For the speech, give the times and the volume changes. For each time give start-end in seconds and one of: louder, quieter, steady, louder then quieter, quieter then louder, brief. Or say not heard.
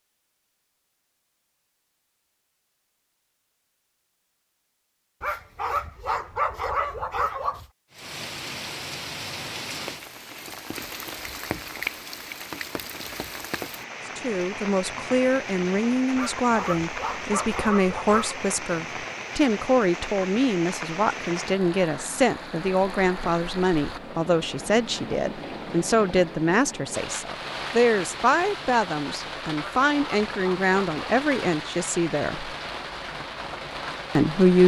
14.2-32.5 steady
34.1-34.6 brief.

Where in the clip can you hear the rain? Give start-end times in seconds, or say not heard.
7.9-34.6.